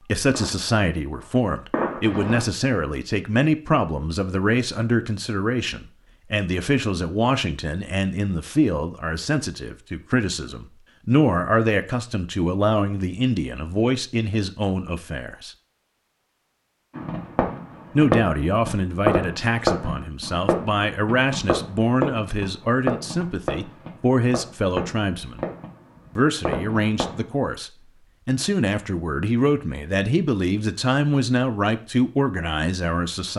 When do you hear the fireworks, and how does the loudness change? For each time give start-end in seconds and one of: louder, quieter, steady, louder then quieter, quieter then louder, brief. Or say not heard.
0.2-2.5 brief
16.9-27.2 quieter.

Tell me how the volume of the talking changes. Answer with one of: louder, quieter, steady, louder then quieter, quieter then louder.
steady.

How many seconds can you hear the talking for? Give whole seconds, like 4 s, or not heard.
30 s.